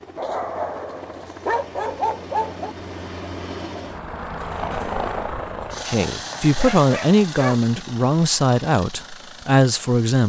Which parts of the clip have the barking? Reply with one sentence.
The barking can be heard from 0.1 to 2.8 s and from 6.1 to 7.6 s.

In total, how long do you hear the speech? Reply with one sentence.
The speech can be heard for 4 seconds in total.